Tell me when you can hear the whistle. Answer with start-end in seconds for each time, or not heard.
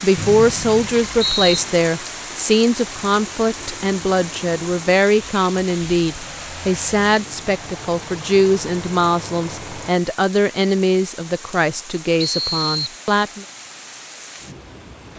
0.1-1.6, 12.2-12.9.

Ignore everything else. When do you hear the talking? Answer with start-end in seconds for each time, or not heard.
0.0-13.4.